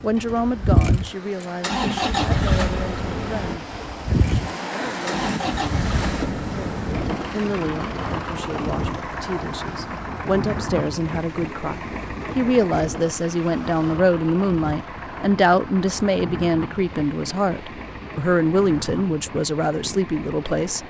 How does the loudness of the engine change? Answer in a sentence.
The loudness of the engine goes down.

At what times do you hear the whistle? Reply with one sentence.
The whistle can't be heard in this clip.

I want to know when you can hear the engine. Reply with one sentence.
You can hear the engine from 0.0 to 20.8 s.